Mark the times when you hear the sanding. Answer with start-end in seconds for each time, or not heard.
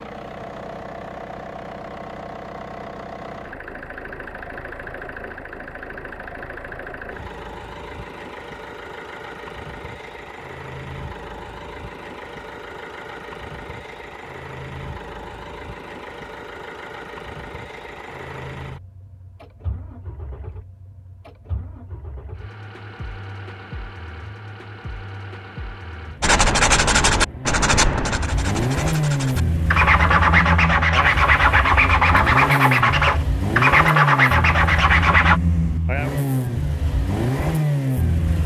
26.2-35.4.